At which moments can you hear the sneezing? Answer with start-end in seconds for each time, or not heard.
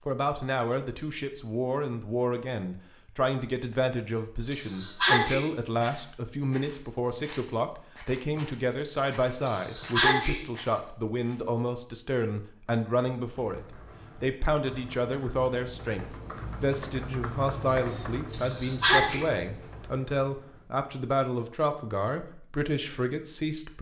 4.5-5.5, 9.4-10.4, 18.2-19.2.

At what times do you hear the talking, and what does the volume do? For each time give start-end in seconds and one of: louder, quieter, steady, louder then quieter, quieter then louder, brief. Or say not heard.
0.1-23.7 steady.